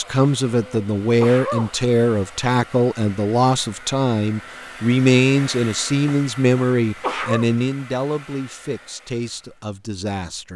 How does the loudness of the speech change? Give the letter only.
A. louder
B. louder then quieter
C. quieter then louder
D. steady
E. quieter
E.